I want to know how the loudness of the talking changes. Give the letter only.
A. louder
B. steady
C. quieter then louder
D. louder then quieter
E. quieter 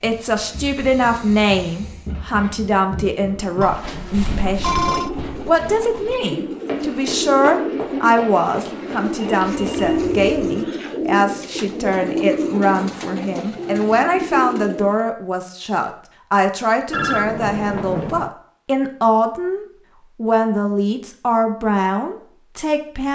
B.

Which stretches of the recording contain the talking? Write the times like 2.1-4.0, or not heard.
0.0-23.1.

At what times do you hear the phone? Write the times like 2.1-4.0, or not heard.
3.6-5.1, 9.2-10.6, 16.9-18.3.